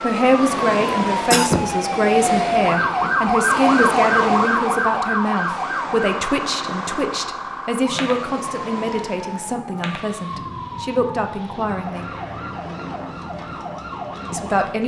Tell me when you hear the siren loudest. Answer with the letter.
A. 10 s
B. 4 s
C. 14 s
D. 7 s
B.